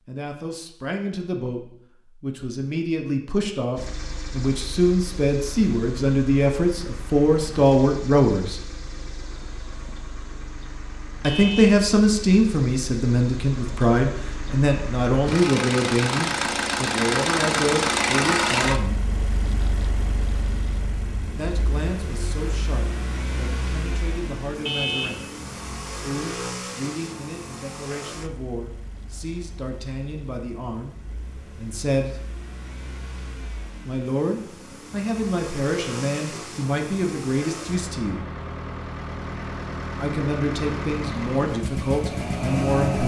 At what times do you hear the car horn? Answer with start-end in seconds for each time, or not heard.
11.2-11.8, 24.6-25.2.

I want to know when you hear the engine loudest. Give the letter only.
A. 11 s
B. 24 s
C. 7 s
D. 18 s
D.